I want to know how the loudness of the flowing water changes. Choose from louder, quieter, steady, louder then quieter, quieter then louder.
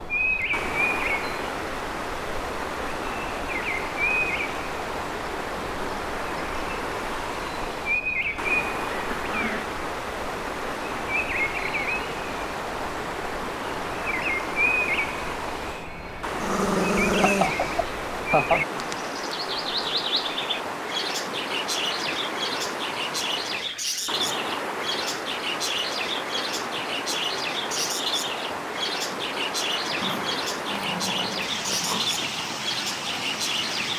steady.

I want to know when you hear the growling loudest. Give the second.
17 s.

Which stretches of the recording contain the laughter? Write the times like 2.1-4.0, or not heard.
17.2-18.8.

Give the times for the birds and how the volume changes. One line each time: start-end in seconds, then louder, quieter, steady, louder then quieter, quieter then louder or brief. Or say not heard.
0.0-33.9 steady.